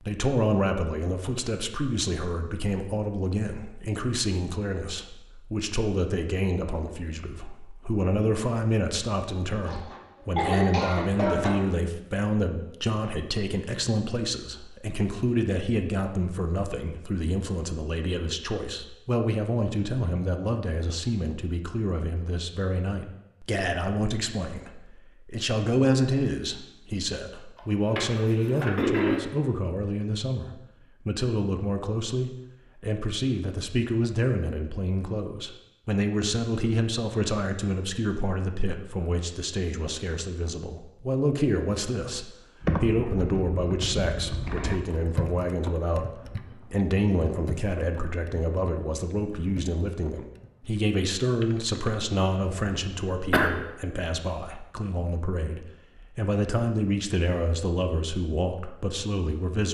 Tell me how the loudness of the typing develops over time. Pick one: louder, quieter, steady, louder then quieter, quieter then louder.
quieter.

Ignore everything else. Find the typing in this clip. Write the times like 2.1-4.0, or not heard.
42.6-52.0.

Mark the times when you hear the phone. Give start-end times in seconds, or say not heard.
not heard.